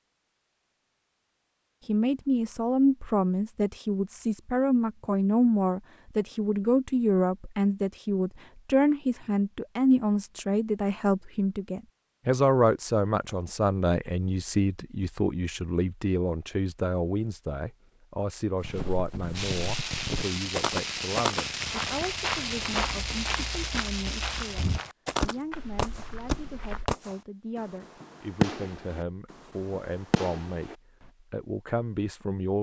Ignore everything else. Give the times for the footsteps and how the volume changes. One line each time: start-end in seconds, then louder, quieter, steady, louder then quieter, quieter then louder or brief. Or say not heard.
18.6-26.9 louder then quieter.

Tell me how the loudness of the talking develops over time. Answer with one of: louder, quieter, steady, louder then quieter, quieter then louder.
quieter.